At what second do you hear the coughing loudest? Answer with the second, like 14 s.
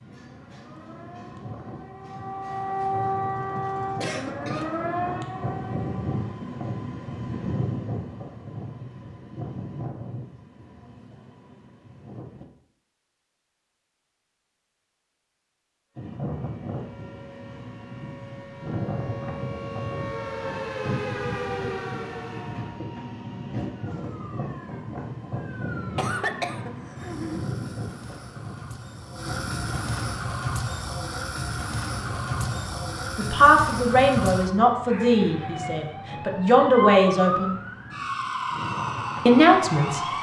26 s.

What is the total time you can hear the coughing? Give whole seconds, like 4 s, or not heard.
2 s.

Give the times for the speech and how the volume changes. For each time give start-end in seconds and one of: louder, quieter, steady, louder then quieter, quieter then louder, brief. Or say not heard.
33.1-37.5 quieter then louder
39.2-40.0 brief.